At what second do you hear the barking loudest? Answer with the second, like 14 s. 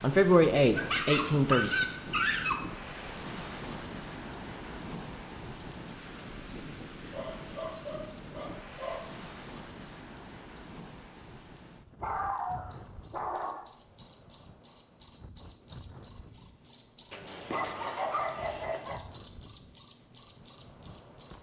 2 s.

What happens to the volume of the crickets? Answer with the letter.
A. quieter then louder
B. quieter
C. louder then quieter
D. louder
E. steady
D.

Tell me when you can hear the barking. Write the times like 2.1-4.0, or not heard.
0.8-2.7, 7.0-9.0, 12.0-13.7, 17.1-19.0.